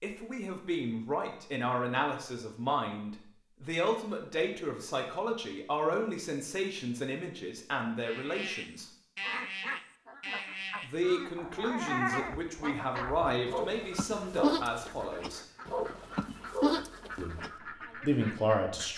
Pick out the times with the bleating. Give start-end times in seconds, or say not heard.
8.0-17.5.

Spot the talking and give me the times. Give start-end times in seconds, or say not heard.
0.0-8.9, 10.8-15.4, 17.1-18.9.